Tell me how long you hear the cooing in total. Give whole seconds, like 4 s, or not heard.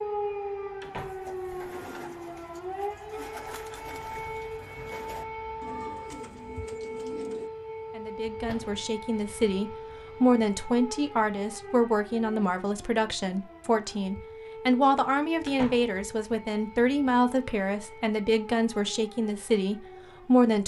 7 s.